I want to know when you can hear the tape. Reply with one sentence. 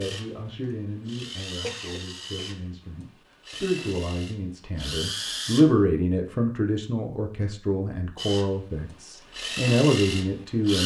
You can't hear the tape here.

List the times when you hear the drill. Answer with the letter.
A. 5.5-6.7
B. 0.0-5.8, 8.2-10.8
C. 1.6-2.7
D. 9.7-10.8
B.